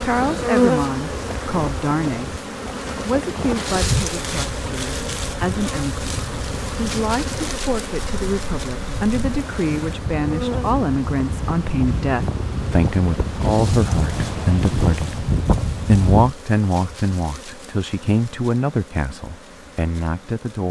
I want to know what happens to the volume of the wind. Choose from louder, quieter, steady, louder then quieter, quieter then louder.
louder.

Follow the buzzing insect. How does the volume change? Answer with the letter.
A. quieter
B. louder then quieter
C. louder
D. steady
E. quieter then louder
A.